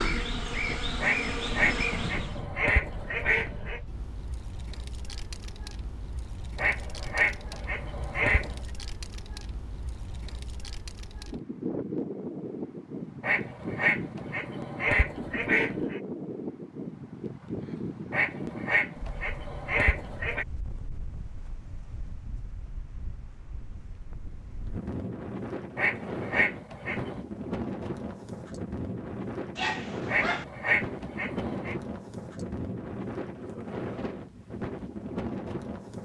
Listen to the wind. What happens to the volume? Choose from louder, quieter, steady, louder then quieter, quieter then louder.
louder.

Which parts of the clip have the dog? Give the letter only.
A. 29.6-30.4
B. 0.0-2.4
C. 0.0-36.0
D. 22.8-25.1
A.